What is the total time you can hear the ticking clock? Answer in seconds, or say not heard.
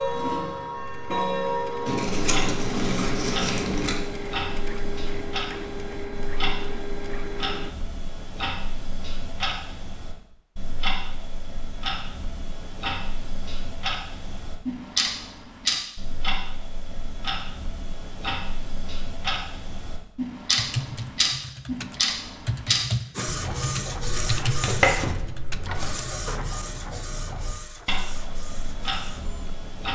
30 s.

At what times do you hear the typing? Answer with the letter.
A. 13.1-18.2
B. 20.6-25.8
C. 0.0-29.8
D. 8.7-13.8
B.